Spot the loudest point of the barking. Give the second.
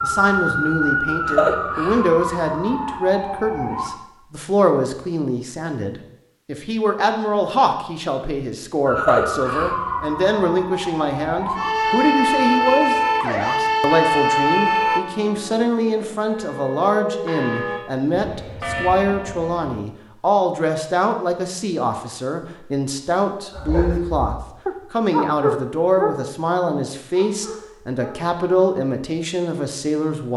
25 s.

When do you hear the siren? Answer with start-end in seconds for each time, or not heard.
0.0-3.9, 8.8-15.0.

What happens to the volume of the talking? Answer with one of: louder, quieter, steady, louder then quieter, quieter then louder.
steady.